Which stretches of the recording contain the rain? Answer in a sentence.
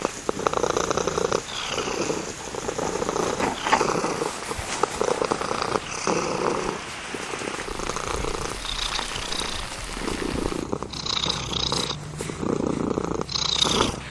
You can hear the rain from 0.0 to 14.0 s.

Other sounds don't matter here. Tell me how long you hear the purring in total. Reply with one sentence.
The purring can be heard for 14 seconds in total.